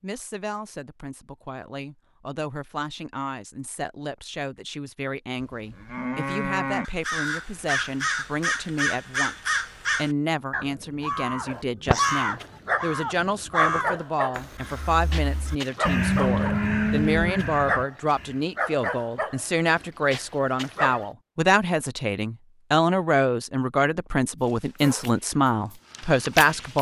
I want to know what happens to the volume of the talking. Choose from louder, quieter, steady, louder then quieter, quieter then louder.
louder.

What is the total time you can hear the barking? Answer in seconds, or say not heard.
12 s.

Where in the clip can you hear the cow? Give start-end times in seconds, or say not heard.
5.5-6.8, 15.8-17.4.